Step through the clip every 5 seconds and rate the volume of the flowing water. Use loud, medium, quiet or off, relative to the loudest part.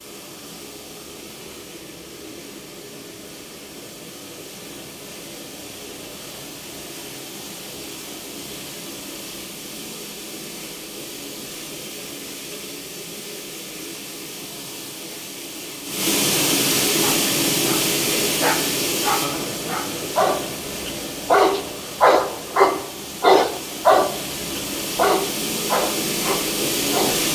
quiet, quiet, quiet, loud, medium, loud.